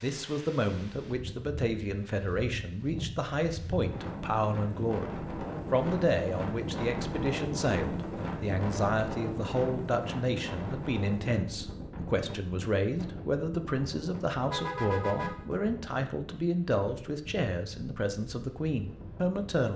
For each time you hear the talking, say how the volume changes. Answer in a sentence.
You can hear the talking from 0.0 to 19.7 s, at a steady volume.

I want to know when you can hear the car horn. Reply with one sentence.
You can hear the car horn from 14.4 to 15.6 s.